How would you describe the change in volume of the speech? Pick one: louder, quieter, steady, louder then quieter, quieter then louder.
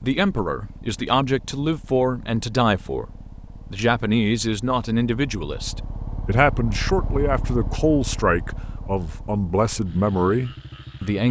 steady.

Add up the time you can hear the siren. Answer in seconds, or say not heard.
not heard.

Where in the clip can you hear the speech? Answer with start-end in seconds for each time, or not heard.
0.0-3.0, 3.7-11.2.